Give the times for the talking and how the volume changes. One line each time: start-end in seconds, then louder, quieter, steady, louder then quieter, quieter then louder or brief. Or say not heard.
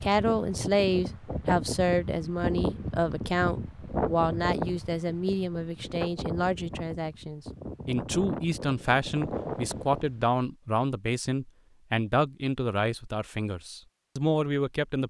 0.0-15.0 steady.